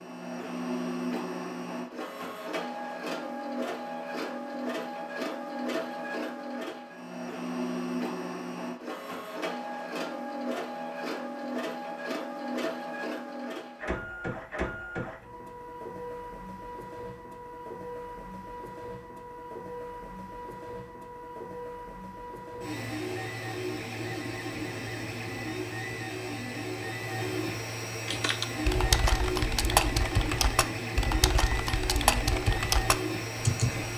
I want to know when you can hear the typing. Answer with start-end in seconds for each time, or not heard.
28.1-33.9.